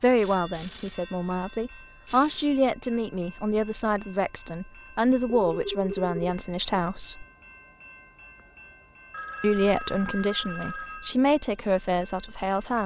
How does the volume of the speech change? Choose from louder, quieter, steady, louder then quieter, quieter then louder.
steady.